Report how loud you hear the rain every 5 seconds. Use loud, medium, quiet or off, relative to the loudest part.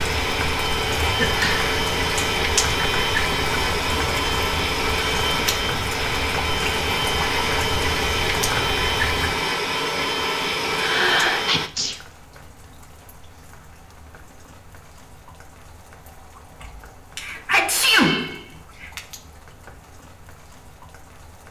loud, loud, quiet, quiet, quiet.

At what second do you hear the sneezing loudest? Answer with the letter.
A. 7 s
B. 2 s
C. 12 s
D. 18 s
D.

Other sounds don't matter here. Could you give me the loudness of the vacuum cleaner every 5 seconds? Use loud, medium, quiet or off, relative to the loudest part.
loud, loud, loud, off, off.